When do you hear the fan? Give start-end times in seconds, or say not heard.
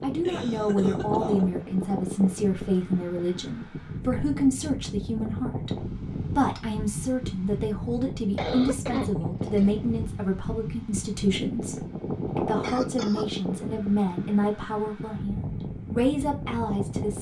0.0-17.1.